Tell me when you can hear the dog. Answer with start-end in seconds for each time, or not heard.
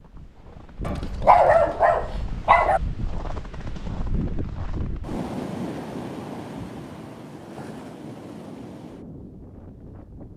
0.8-2.8.